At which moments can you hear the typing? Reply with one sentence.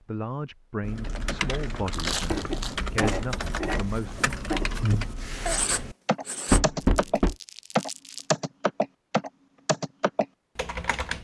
You can hear the typing from 0.8 to 11.1 s.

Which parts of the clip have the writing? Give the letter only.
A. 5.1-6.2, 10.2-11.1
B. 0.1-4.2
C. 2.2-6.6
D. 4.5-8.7
C.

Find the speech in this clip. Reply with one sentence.
You can hear the speech from 0.1 to 4.2 s.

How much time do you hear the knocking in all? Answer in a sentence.
The knocking can be heard for 2 seconds in total.